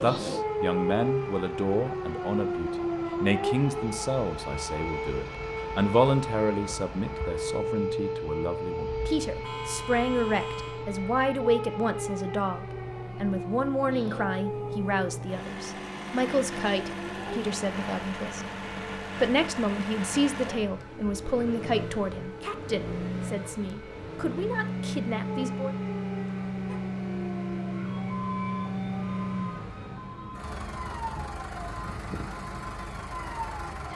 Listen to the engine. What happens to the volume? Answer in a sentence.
The loudness of the engine goes up.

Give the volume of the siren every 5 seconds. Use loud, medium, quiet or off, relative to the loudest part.
loud, loud, medium, medium, quiet, medium, medium.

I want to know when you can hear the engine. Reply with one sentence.
You can hear the engine from 0.2 to 33.9 s.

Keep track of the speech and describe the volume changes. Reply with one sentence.
The loudness of the speech stays about the same.